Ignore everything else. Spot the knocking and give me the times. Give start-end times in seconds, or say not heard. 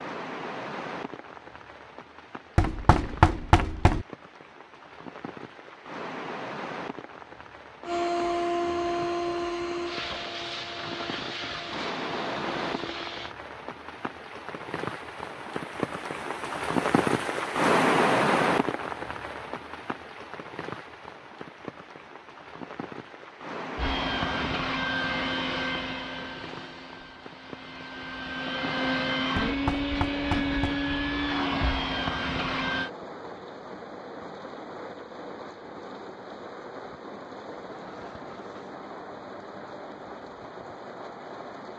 2.5-4.0, 29.4-30.8.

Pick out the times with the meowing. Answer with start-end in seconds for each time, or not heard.
not heard.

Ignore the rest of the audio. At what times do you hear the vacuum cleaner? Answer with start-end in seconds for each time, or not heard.
7.8-13.3, 23.8-32.9.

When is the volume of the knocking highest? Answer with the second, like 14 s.
3 s.